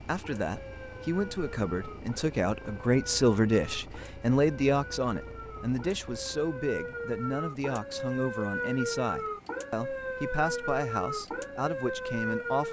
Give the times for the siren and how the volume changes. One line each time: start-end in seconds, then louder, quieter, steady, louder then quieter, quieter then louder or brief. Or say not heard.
0.1-12.6 louder.